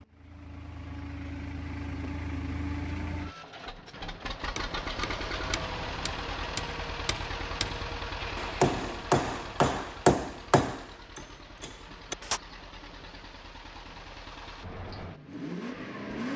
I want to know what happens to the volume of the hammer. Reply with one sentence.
The loudness of the hammer goes up, then down.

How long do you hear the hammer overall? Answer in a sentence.
The hammer can be heard for 8 seconds in total.